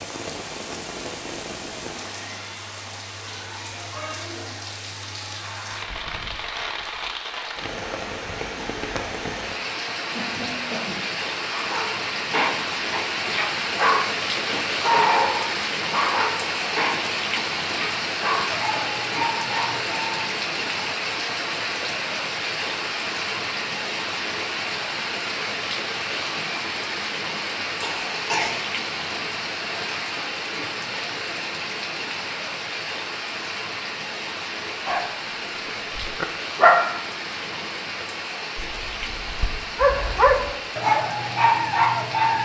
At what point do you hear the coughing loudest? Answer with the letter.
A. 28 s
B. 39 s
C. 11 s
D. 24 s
A.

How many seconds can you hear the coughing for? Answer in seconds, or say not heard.
2 s.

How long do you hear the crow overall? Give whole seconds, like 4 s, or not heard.
not heard.